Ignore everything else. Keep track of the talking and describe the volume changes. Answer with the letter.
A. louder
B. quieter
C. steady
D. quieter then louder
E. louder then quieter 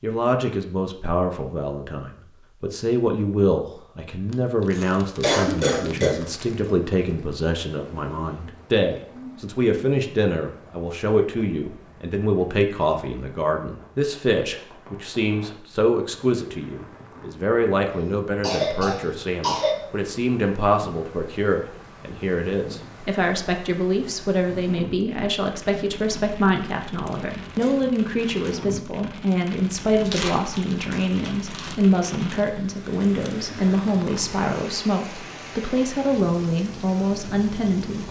C.